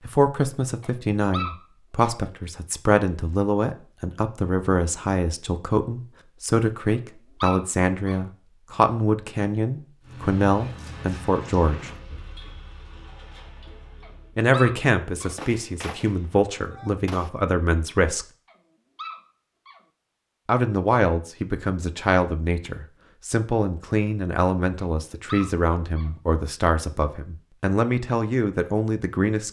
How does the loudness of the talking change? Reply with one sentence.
The loudness of the talking stays about the same.